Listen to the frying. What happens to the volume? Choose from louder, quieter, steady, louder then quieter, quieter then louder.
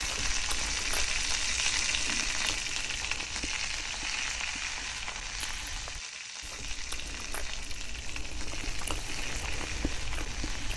quieter.